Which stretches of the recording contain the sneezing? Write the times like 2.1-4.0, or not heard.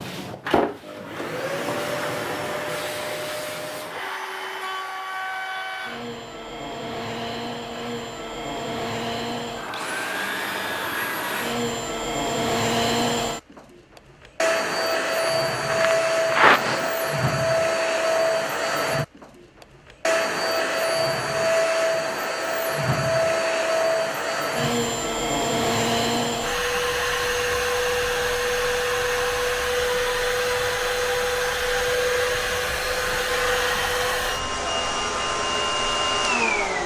15.2-16.9.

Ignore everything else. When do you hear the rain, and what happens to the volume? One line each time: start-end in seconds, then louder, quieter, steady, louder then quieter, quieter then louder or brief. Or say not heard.
not heard.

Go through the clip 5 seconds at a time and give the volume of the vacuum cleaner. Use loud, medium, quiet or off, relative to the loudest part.
medium, medium, loud, loud, loud, loud, loud, loud.